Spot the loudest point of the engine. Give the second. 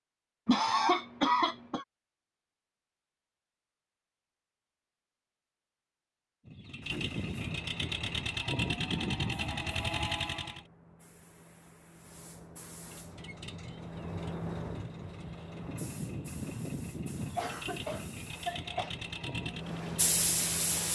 9 s.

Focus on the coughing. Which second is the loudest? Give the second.
1 s.